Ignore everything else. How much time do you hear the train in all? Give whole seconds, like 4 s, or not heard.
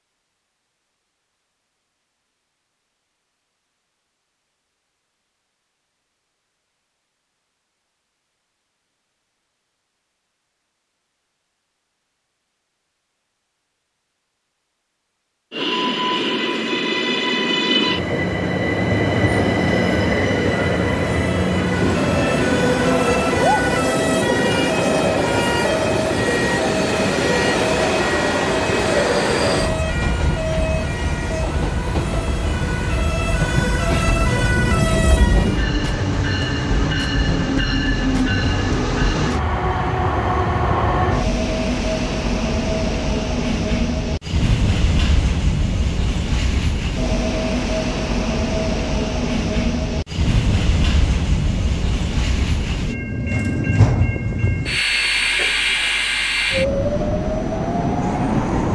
43 s.